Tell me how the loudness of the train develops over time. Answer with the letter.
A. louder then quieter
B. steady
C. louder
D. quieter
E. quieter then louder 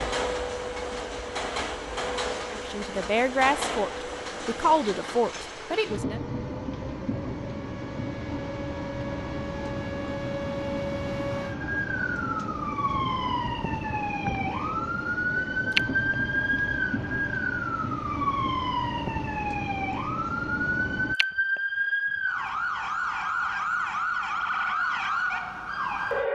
B.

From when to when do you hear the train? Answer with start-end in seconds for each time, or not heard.
0.0-21.1.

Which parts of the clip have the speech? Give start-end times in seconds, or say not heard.
2.5-6.2.